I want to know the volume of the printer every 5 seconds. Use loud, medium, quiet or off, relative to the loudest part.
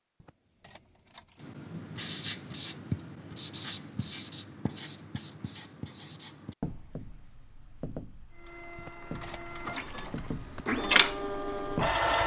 off, quiet, loud.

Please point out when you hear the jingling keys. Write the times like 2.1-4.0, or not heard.
0.2-1.5, 8.8-10.8.